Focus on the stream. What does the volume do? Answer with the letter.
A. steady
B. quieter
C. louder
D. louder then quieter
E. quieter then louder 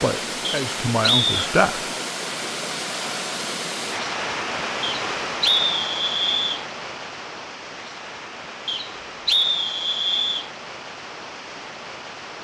B.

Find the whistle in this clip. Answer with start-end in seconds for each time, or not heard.
0.5-1.3, 4.8-6.7, 8.7-10.4.